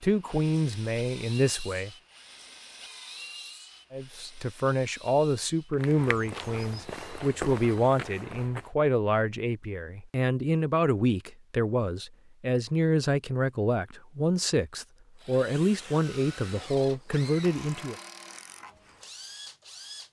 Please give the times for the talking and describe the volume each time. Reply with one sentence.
You can hear the talking briefly from 0.0 to 1.9 s; and from 3.9 to 17.9 s, at a steady volume.